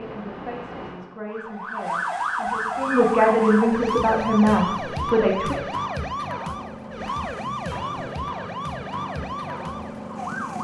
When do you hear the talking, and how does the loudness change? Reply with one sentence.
You can hear the talking from 0.0 to 5.6 s, getting louder.